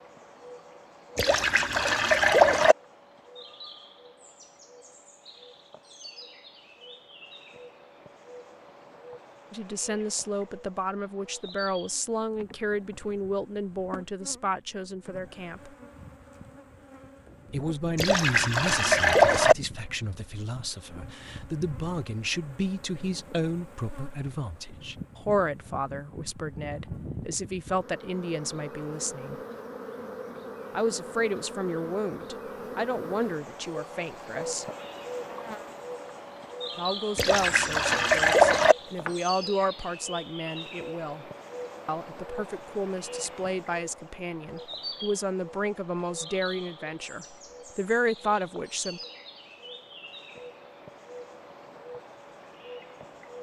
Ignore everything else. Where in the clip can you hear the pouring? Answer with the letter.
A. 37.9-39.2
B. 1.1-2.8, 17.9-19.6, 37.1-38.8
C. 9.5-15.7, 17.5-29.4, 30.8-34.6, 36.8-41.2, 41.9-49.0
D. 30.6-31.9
B.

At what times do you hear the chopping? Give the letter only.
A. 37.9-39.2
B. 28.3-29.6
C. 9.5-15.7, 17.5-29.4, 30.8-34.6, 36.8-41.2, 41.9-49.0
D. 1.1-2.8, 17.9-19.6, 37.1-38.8
A.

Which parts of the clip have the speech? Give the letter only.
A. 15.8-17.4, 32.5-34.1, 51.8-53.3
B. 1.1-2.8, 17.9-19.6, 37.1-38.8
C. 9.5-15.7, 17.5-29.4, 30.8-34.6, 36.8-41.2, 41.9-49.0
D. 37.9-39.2
C.